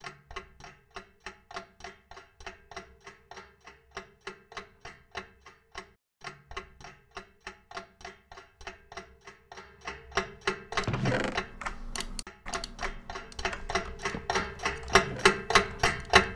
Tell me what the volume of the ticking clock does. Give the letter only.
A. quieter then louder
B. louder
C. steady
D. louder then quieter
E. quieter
B.